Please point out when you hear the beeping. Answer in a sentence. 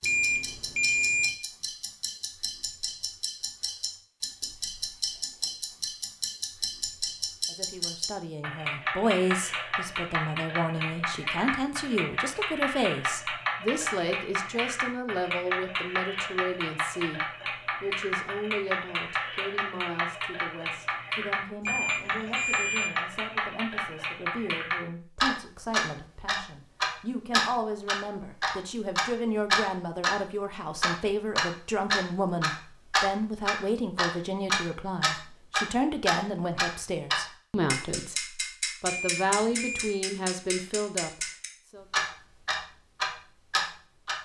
The beeping can be heard from 0.0 to 1.3 s, from 21.6 to 22.9 s and from 38.9 to 40.0 s.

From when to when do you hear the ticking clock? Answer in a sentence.
The ticking clock can be heard from 0.0 to 44.2 s.